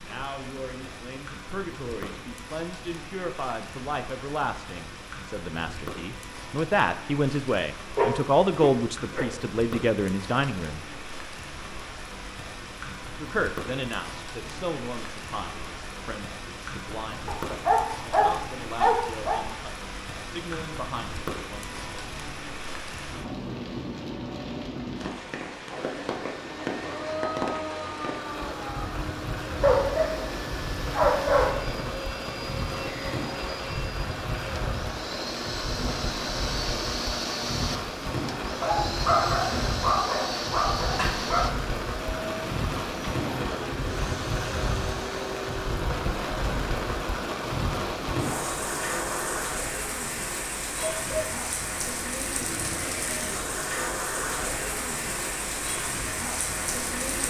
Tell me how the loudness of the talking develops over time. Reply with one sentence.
The volume of the talking goes up, then down.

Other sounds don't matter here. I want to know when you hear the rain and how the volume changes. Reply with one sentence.
The rain can be heard from 0.0 to 57.2 s, getting louder.